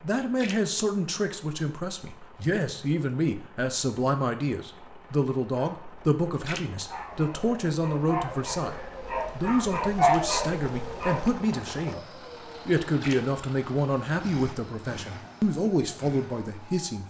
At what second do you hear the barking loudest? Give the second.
10 s.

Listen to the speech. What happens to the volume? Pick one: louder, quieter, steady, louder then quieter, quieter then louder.
steady.